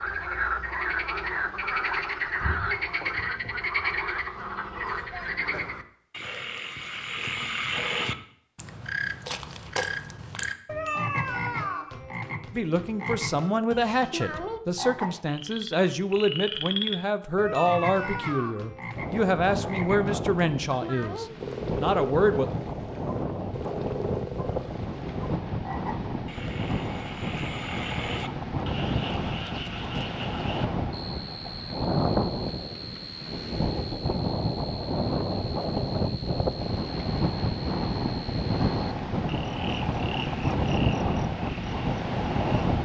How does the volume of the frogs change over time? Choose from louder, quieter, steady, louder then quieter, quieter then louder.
quieter.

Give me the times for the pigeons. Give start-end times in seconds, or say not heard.
not heard.